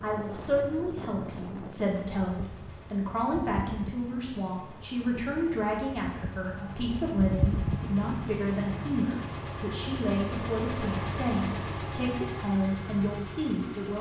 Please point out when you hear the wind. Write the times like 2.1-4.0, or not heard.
0.0-8.9.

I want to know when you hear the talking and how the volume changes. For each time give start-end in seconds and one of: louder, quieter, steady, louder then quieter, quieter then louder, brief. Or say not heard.
0.0-13.9 steady.